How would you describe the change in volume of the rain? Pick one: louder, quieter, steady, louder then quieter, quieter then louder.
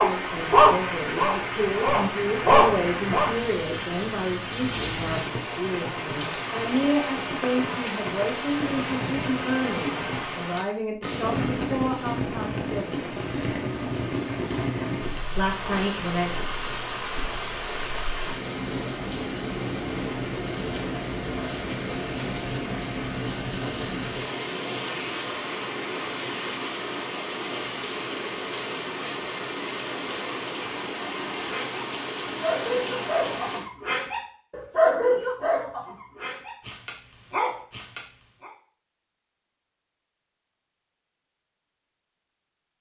steady.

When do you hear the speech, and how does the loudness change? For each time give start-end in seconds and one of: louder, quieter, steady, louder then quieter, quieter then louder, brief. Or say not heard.
0.0-13.1 steady
15.3-16.3 brief.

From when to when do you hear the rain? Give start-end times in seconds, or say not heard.
0.0-33.6.